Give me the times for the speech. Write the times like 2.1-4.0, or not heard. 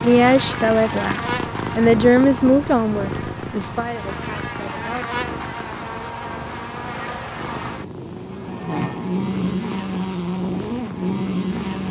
0.0-5.2.